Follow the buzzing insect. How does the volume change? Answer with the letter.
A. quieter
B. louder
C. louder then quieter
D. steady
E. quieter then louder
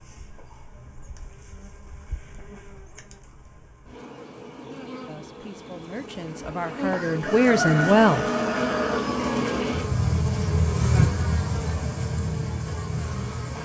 B.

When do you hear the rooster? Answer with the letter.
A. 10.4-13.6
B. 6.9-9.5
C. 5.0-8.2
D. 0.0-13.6
B.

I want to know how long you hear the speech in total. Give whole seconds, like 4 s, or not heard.
3 s.